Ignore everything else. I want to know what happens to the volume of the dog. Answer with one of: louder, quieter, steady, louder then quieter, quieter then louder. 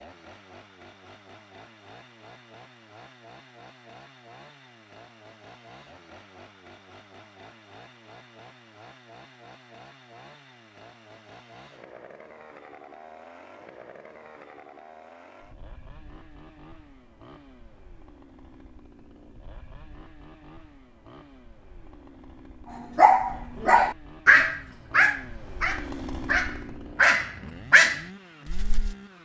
quieter then louder.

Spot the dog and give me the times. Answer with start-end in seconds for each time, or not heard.
22.9-28.9.